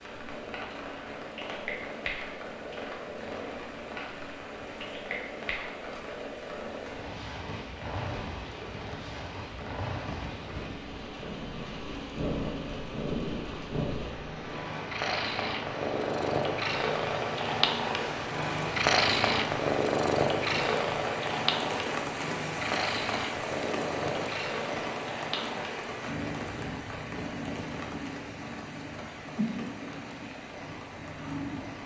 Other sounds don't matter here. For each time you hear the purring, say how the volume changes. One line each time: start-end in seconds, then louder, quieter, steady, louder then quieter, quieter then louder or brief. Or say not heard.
0.0-31.8 louder then quieter.